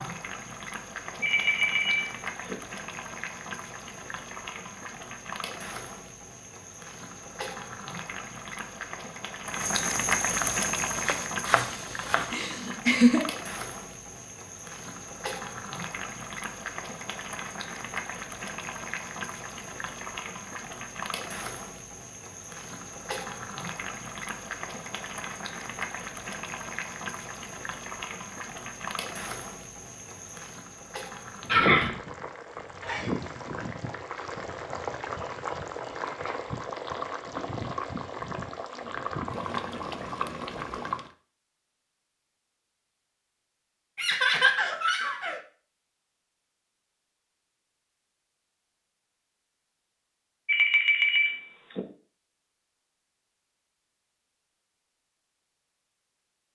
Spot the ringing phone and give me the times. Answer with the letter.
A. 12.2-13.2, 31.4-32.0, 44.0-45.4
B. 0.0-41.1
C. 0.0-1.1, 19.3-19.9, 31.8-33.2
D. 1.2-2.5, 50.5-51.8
D.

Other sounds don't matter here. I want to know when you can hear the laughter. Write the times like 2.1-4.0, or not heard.
12.2-13.2, 31.4-32.0, 44.0-45.4.